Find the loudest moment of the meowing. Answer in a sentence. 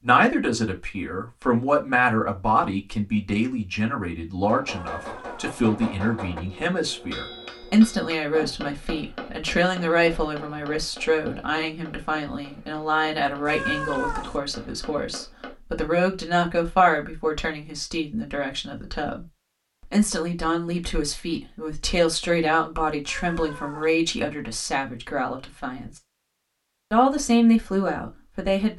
The loudest moment of the meowing is at 14 seconds.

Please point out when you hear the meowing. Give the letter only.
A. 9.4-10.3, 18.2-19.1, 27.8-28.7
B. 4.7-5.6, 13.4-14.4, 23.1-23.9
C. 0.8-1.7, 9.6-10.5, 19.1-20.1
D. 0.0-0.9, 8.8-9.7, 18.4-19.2
B.